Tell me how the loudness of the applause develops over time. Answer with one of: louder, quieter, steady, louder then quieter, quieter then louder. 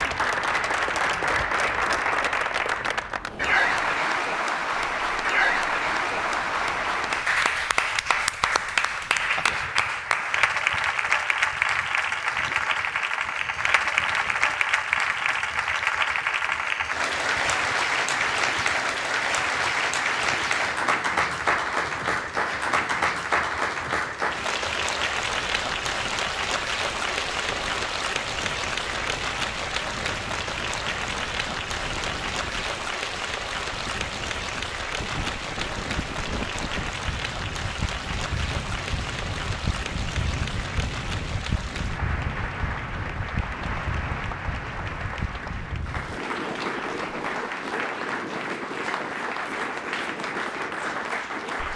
quieter.